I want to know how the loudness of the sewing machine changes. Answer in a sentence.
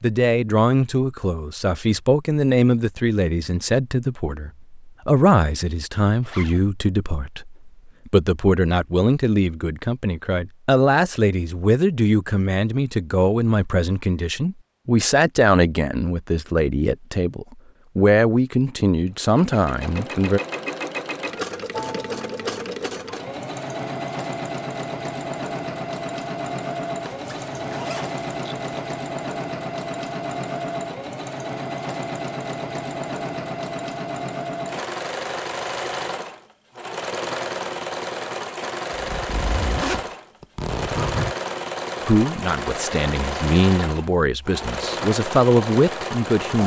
The volume of the sewing machine stays about the same.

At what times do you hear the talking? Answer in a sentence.
The talking can be heard from 0.0 to 20.4 s and from 42.0 to 46.6 s.